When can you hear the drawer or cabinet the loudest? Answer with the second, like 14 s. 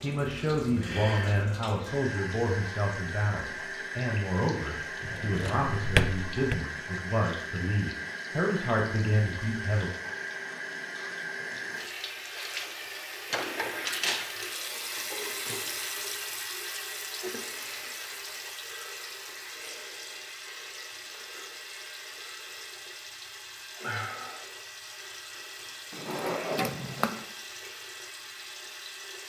6 s.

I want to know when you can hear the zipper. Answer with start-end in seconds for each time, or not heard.
not heard.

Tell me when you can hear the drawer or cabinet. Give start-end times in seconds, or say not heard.
5.0-6.6, 13.3-14.3, 25.9-27.2.